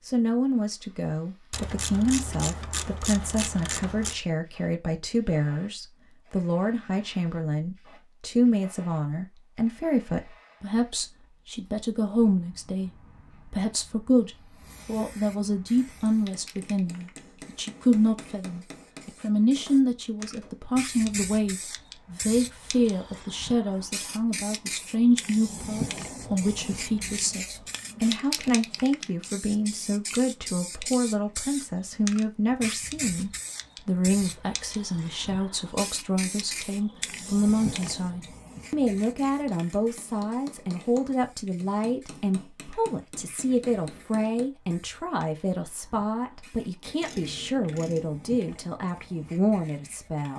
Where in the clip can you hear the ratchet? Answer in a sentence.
You can hear the ratchet from 1.5 to 4.2 s and from 47.0 to 48.1 s.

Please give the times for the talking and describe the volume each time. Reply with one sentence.
The talking can be heard from 0.1 to 50.3 s, at a steady volume.